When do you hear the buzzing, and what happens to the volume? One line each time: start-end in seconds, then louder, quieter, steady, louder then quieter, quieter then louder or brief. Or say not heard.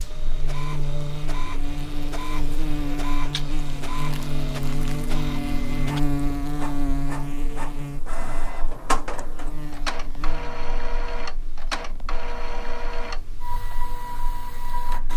0.0-15.1 quieter.